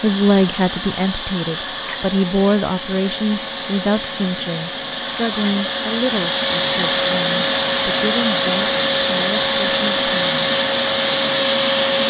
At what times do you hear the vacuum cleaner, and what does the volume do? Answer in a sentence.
The vacuum cleaner can be heard from 0.0 to 12.0 s, getting louder.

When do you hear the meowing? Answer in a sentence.
The meowing can't be heard in this clip.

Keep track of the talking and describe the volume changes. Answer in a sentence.
The volume of the talking goes down.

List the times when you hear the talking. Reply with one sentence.
The talking can be heard from 0.0 to 10.4 s.